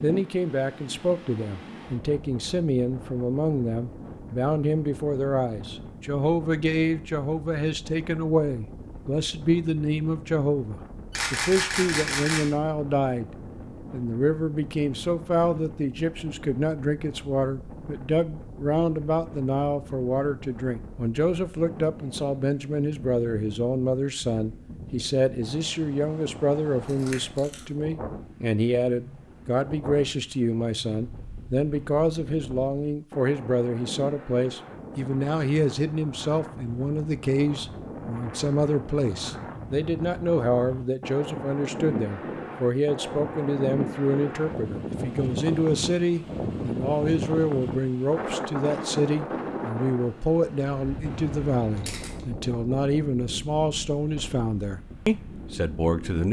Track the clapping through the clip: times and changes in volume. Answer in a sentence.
You can't hear the clapping here.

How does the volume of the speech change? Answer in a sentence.
The loudness of the speech stays about the same.